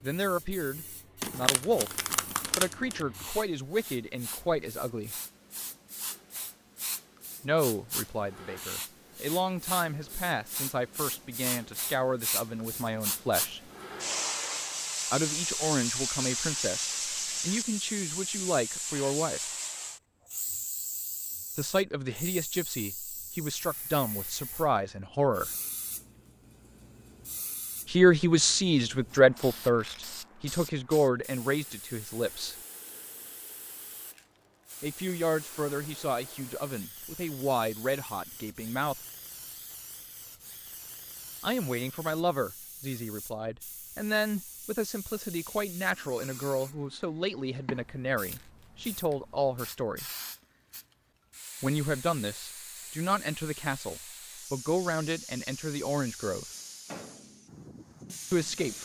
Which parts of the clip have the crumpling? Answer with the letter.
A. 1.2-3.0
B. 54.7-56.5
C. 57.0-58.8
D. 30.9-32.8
A.